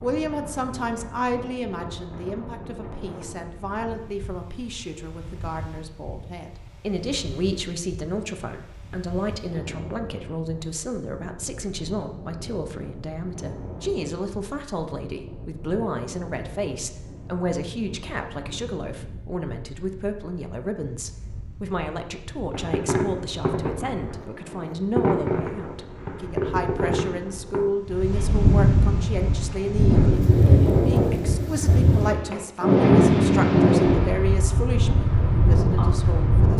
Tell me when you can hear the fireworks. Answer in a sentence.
You can hear the fireworks from 22.5 to 27.6 s.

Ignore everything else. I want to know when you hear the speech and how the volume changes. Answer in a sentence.
The speech can be heard from 0.0 to 36.5 s, at a steady volume.